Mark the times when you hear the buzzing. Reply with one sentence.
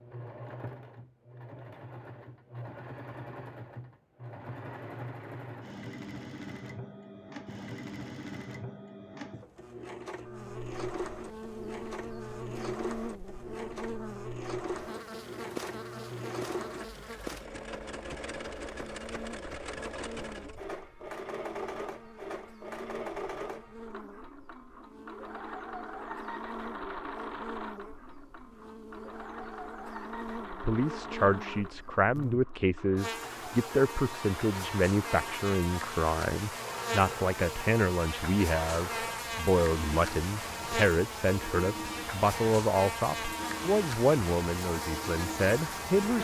The buzzing can be heard from 10.2 to 46.1 s.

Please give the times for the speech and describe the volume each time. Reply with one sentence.
You can hear the speech from 30.6 to 46.1 s, at a steady volume.